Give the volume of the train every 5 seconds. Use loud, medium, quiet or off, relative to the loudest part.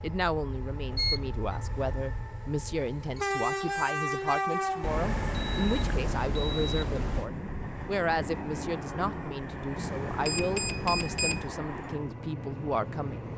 loud, loud, medium.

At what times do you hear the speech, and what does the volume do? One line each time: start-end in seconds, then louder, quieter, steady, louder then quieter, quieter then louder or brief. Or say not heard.
0.0-13.3 steady.